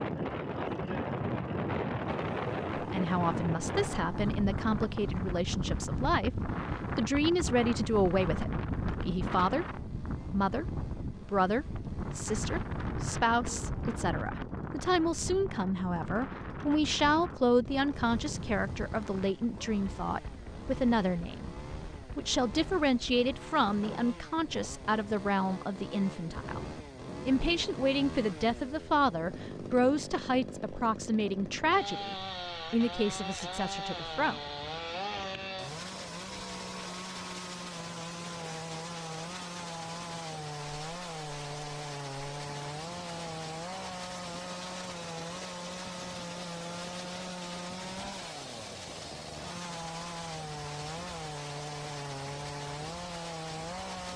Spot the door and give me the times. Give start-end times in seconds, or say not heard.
not heard.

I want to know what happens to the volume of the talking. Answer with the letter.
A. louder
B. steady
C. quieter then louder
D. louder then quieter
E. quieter
B.